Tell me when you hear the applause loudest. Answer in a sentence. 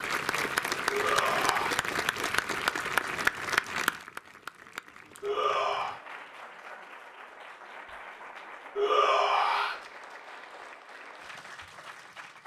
The volume of the applause peaks at 3 seconds.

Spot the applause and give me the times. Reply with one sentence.
The applause can be heard from 0.0 to 12.4 s.